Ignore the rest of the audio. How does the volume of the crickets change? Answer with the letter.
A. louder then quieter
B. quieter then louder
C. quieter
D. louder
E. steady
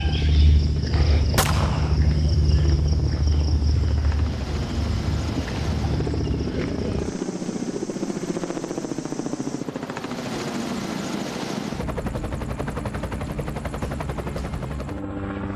C.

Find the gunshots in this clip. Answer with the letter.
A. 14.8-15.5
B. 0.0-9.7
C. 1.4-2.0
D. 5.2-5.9
C.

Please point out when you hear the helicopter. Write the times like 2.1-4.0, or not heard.
0.0-15.5.